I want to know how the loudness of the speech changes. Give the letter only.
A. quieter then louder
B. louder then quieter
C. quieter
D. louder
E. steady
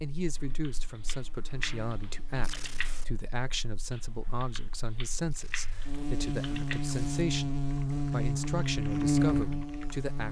E.